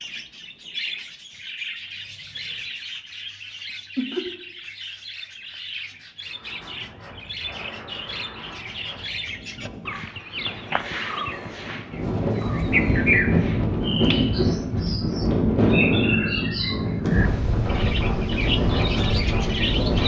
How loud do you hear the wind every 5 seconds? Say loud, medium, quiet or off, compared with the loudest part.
off, quiet, loud, loud.